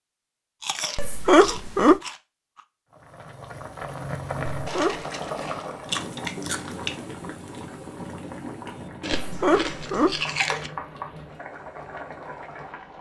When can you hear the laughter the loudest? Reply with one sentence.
The volume of the laughter peaks at 1 second.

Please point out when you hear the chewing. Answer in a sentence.
The chewing can be heard from 0.6 to 2.6 s, from 4.7 to 7.0 s and from 9.0 to 10.7 s.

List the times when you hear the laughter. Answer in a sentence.
You can hear the laughter from 0.9 to 2.0 s, from 4.5 to 5.0 s and from 9.2 to 10.2 s.